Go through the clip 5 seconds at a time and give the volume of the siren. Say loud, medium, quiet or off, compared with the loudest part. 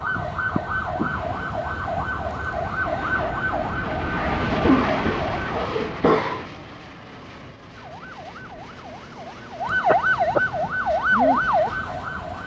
medium, medium, loud.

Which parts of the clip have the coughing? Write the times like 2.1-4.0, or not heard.
0.6-1.1, 4.6-6.5, 9.8-10.4.